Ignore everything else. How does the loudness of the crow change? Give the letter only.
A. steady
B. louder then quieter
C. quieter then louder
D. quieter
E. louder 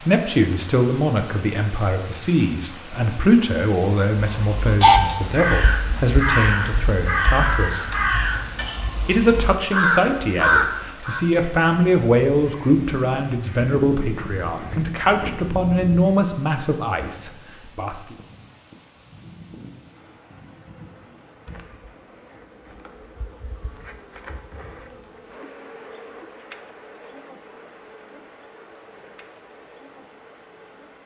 D.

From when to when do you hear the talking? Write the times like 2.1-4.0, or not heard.
0.0-8.0, 9.1-18.1.